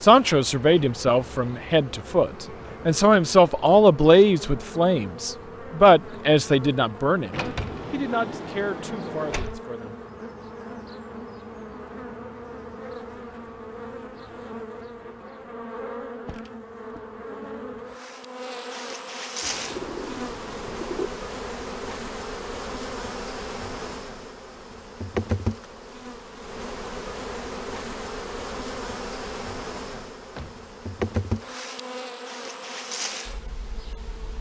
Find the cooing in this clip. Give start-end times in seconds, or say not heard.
19.4-21.1.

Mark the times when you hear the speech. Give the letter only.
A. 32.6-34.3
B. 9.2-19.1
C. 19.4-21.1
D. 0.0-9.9
D.